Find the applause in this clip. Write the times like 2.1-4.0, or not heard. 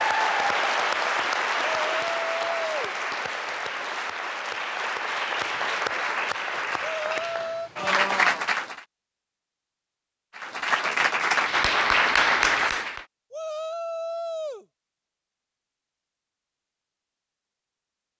0.0-8.8, 10.3-13.1.